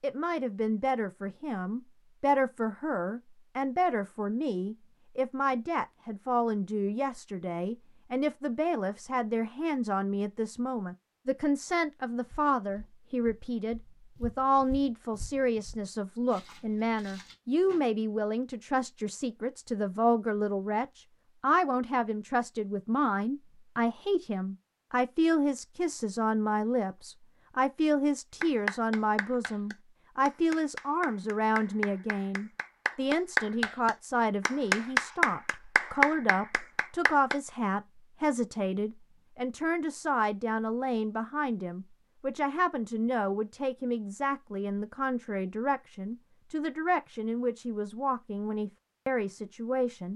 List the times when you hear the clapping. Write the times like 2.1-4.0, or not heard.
28.4-37.4.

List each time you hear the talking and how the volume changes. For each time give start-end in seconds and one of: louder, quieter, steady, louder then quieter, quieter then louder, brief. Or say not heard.
0.0-50.1 steady.